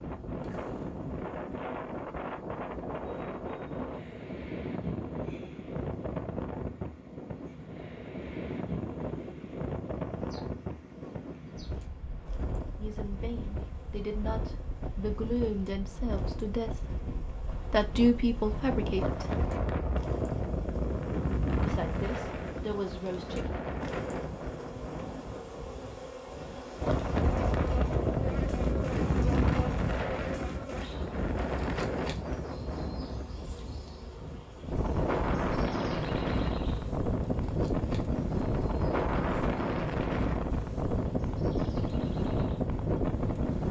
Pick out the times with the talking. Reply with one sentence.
You can hear the talking from 12.8 to 19.3 s and from 21.6 to 23.5 s.